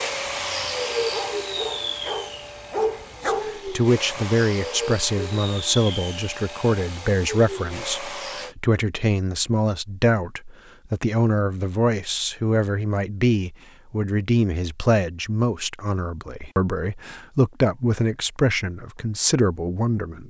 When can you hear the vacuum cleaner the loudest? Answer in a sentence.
The loudest moment of the vacuum cleaner is at 1 second.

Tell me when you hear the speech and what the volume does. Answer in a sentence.
You can hear the speech from 3.2 to 20.2 s, at a steady volume.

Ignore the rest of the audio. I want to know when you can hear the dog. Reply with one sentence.
You can hear the dog from 0.0 to 3.5 s.